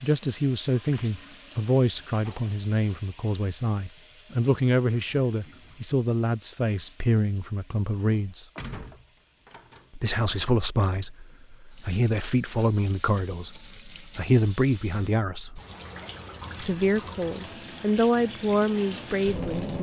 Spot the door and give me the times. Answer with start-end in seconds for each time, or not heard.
8.6-9.9.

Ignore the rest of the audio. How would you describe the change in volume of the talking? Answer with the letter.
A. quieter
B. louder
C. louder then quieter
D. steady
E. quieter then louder
D.